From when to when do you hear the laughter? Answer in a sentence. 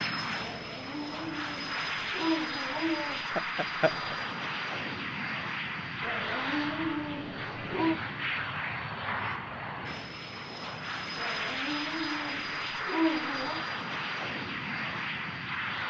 The laughter can be heard from 3.4 to 4.2 s.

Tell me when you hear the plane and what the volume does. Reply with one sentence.
You can hear the plane from 0.0 to 15.8 s, at a steady volume.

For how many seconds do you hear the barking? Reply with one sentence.
The barking can be heard for 7 seconds in total.